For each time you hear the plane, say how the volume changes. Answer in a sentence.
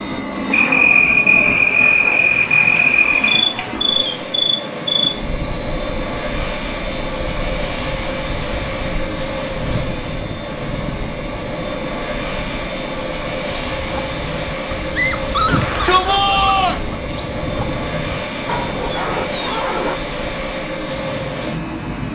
You can hear the plane from 0.0 to 22.1 s, at a steady volume.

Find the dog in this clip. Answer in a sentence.
The dog can be heard from 13.5 to 19.9 s.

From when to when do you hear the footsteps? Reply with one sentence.
You can't hear the footsteps here.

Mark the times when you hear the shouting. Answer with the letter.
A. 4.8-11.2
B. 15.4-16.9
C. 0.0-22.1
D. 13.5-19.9
B.